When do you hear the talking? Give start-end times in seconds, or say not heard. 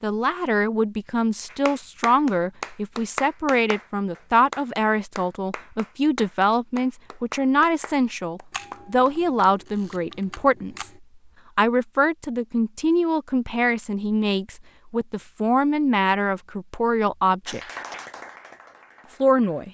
0.0-10.9, 11.6-17.6, 19.2-19.7.